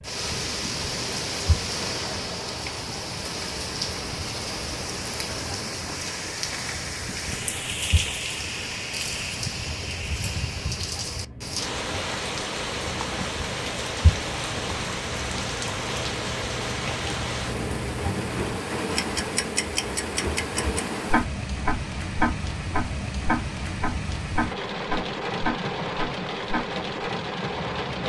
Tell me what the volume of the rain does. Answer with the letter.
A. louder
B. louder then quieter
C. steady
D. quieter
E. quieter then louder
C.